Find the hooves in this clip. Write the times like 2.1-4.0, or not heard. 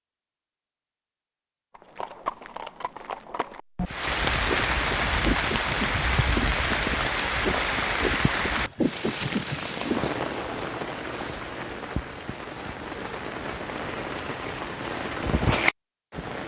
1.8-10.1.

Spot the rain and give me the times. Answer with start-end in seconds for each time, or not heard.
3.9-16.4.